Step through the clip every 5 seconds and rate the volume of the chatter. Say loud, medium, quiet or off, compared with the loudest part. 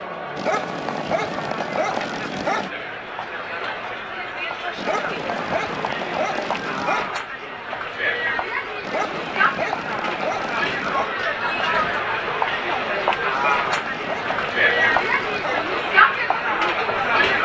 medium, medium, loud, loud.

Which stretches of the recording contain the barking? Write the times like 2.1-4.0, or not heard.
0.3-2.7, 4.8-7.1, 8.8-11.2, 13.3-15.7.